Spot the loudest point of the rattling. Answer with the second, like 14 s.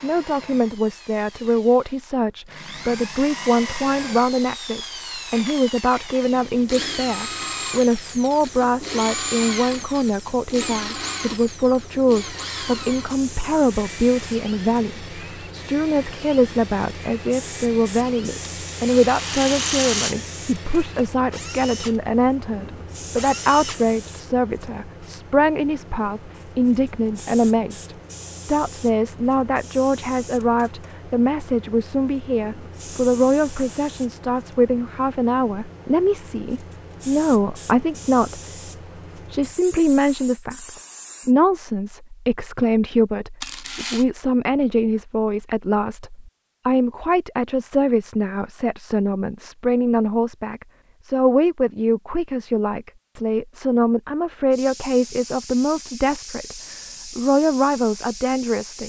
20 s.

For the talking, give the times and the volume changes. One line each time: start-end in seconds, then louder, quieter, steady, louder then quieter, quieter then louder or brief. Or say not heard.
0.0-38.4 steady
39.1-58.8 steady.